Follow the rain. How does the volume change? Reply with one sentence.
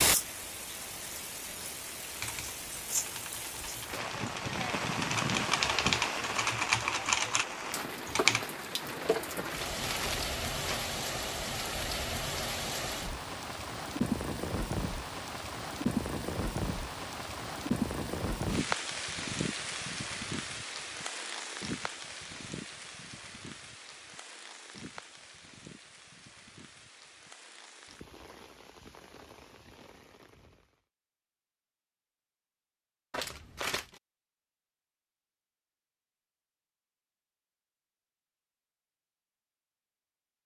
The volume of the rain goes down.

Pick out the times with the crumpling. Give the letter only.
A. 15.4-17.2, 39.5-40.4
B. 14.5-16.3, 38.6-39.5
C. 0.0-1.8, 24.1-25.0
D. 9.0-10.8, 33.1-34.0
D.